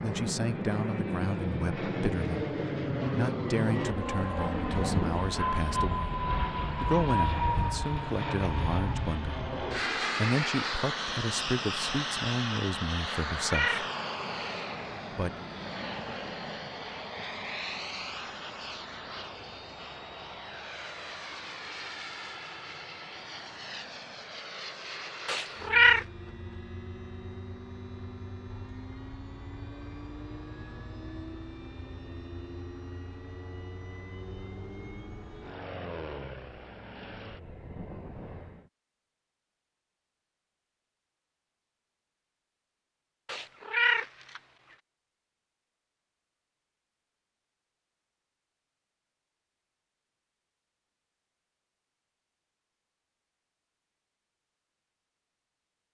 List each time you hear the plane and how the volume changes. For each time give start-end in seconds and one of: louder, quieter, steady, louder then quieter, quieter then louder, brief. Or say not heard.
0.0-38.7 quieter.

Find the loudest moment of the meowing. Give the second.
26 s.